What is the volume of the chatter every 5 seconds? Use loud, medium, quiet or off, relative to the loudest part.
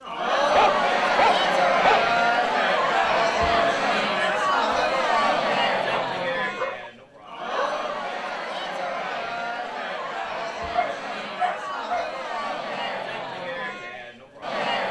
loud, medium, medium.